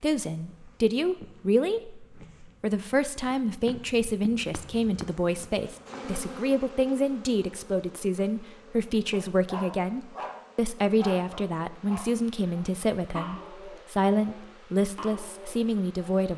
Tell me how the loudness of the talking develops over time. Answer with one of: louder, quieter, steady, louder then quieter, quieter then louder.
steady.